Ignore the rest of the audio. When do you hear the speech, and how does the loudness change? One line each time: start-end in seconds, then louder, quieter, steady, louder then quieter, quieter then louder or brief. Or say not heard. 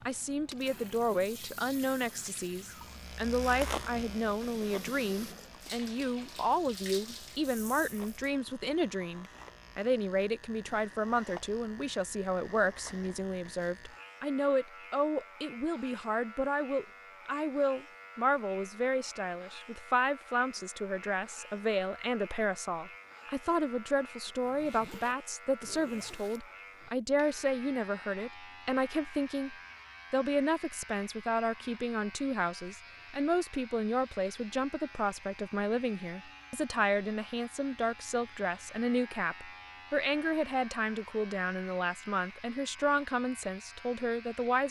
0.1-44.6 steady.